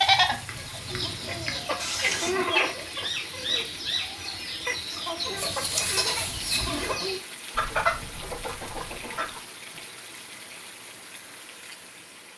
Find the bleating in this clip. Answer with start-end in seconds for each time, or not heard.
0.0-2.3, 5.3-7.0.